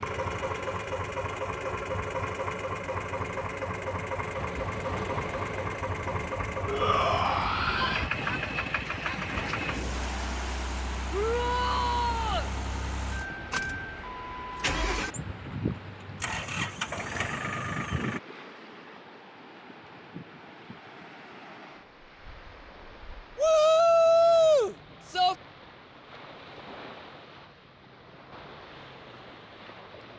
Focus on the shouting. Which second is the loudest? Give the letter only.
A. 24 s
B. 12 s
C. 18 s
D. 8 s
A.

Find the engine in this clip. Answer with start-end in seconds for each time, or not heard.
0.0-18.2.